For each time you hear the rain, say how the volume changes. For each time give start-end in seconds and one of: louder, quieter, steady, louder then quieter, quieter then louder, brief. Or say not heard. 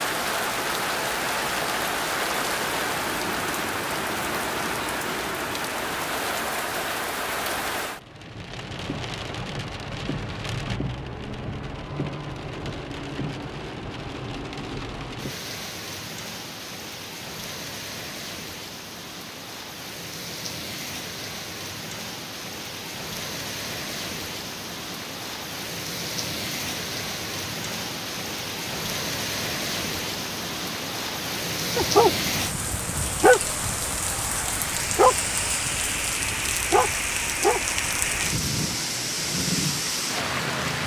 0.0-40.8 quieter then louder.